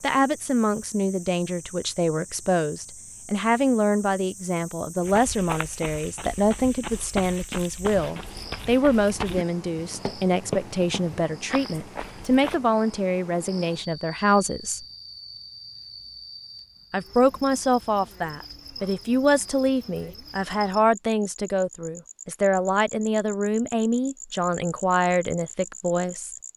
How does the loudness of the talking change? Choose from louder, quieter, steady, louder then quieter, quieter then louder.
steady.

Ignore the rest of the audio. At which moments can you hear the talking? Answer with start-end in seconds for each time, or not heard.
0.0-14.8, 16.9-26.3.